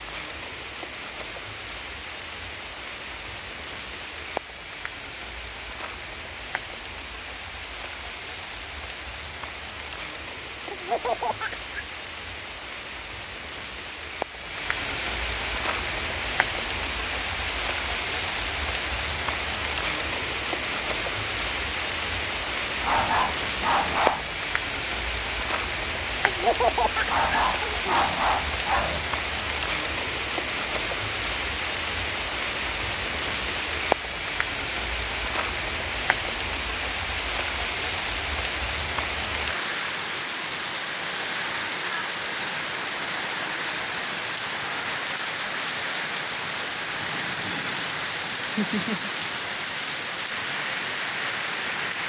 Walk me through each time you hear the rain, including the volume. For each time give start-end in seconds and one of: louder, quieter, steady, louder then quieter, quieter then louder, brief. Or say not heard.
0.0-52.0 louder.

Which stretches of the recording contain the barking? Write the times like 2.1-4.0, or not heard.
22.8-24.3, 27.1-29.0.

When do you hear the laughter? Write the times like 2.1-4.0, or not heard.
10.7-11.8, 26.2-28.1, 48.5-49.1.